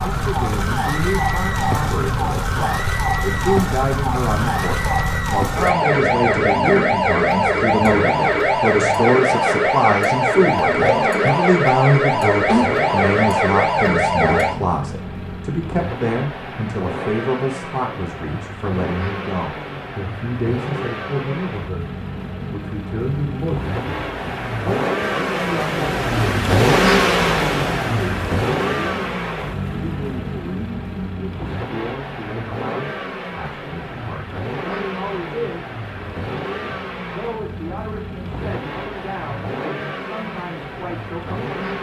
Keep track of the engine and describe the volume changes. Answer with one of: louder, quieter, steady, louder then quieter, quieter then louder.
louder then quieter.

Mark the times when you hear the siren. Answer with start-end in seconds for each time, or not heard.
0.0-14.6.